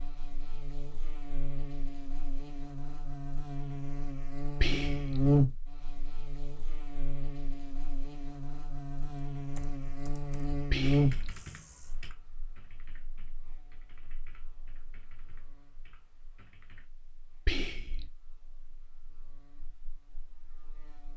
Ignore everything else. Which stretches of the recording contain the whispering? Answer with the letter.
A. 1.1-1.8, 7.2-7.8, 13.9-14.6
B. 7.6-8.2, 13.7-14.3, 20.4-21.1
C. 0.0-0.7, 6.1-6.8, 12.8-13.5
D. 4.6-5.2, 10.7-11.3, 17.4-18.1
D.